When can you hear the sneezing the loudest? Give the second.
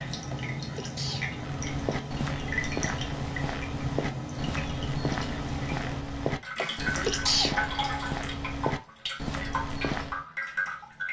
7 s.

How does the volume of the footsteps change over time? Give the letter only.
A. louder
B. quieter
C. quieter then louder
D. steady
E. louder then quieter
D.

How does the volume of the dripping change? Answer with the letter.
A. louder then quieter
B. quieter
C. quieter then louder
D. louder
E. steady
E.